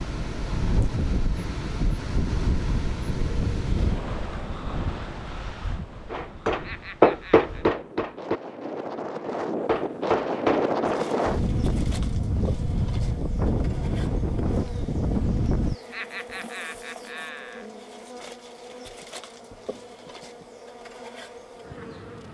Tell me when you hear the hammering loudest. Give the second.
7 s.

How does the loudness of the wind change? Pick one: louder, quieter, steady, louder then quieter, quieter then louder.
quieter then louder.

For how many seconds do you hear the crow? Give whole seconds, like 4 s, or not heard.
not heard.